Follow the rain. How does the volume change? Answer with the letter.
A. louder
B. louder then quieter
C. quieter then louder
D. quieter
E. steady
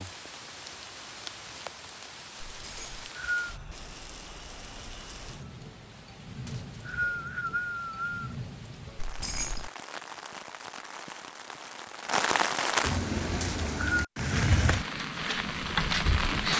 A.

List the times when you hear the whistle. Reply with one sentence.
You can hear the whistle from 2.8 to 3.5 s, from 6.5 to 8.3 s and from 13.4 to 14.1 s.